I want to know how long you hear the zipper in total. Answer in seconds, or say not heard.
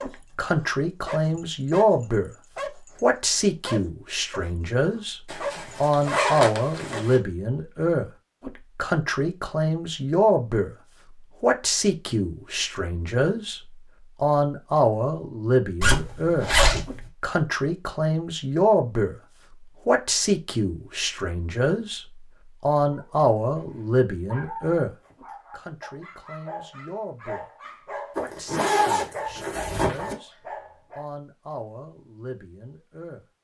5 s.